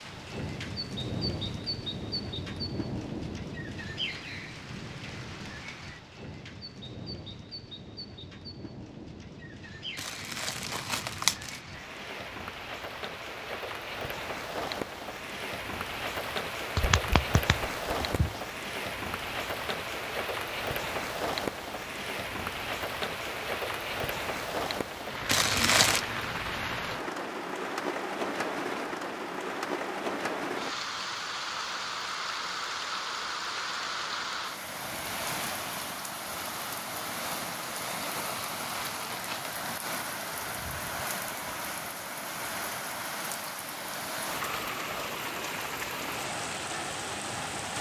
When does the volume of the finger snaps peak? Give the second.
17 s.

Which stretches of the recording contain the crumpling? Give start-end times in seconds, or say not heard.
9.9-11.6, 25.2-26.1, 38.6-39.6.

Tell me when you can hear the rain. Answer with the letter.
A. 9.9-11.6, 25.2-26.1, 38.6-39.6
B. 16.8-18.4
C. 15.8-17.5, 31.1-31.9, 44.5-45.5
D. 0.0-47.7
D.